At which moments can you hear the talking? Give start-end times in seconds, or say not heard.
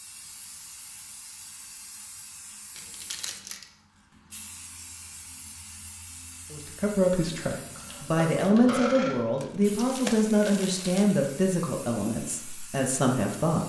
6.5-13.6.